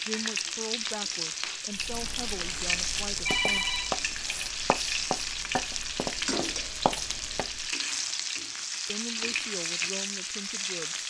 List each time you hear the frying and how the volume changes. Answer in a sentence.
You can hear the frying from 0.0 to 11.0 s, at a steady volume.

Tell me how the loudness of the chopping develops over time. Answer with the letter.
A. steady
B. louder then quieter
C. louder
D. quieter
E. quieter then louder
C.